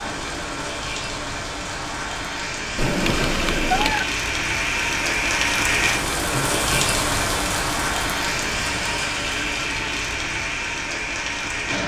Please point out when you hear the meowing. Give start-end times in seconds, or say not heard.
2.8-4.0.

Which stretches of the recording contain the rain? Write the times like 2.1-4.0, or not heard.
0.0-11.8.